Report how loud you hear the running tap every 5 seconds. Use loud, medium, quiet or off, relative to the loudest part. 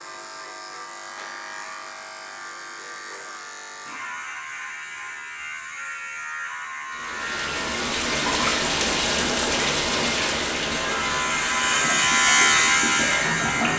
off, loud, loud.